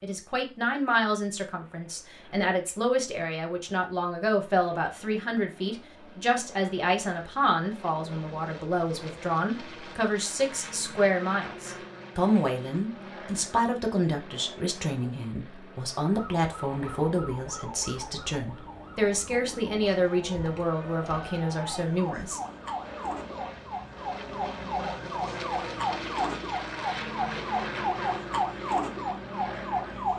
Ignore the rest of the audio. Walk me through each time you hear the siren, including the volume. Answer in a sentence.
You can hear the siren from 16.1 to 30.1 s, getting louder.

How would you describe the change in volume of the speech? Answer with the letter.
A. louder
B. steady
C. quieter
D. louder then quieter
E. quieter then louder
B.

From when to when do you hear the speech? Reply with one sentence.
You can hear the speech from 0.0 to 22.4 s.